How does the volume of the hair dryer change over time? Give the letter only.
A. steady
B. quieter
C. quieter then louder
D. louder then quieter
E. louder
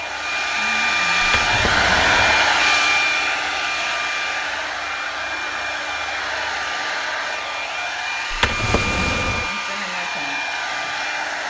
B.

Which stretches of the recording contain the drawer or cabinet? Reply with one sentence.
The drawer or cabinet can be heard from 1.2 to 2.4 s and from 8.3 to 9.5 s.